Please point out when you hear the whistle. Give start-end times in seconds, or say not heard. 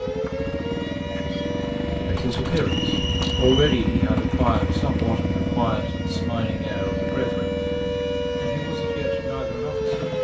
2.6-3.9.